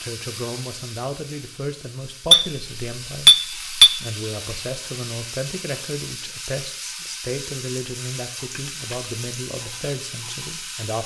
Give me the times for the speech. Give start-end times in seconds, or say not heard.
0.0-11.0.